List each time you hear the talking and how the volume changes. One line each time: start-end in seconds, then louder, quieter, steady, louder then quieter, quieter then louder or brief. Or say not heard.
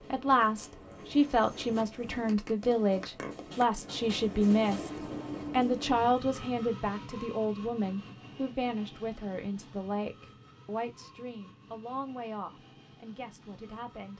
0.0-14.1 quieter.